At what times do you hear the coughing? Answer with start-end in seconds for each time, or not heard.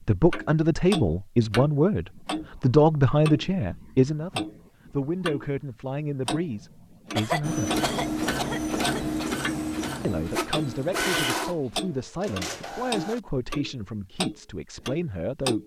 7.2-9.4.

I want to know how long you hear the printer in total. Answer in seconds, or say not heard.
6 s.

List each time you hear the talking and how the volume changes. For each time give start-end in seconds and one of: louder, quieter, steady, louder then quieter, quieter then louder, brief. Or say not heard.
0.1-7.7 quieter
10.0-15.6 steady.